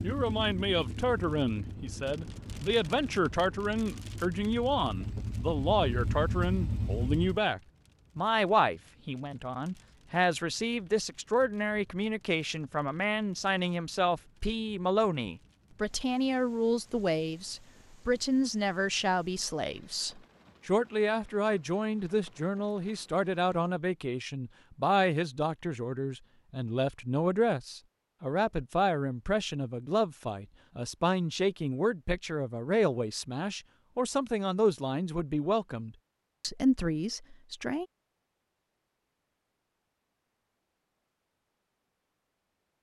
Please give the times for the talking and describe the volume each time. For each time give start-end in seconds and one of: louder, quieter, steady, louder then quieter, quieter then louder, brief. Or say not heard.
0.0-37.9 steady.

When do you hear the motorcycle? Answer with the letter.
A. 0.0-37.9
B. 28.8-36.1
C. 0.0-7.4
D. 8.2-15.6
C.